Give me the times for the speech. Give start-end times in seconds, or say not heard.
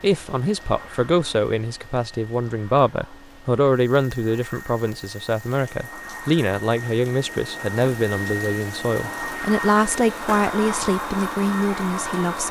0.0-12.4.